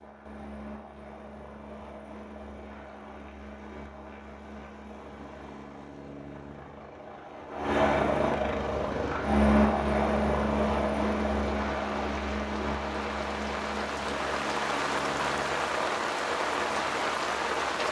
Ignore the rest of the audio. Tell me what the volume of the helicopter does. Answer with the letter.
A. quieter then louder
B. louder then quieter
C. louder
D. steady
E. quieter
B.